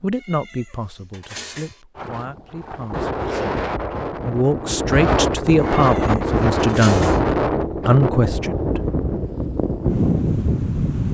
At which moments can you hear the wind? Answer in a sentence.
The wind can be heard from 1.9 to 11.0 s.